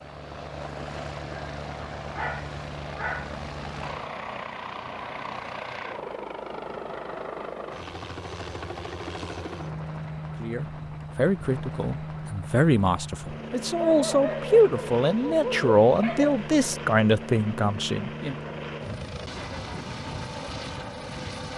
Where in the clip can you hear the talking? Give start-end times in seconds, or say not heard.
10.4-18.4.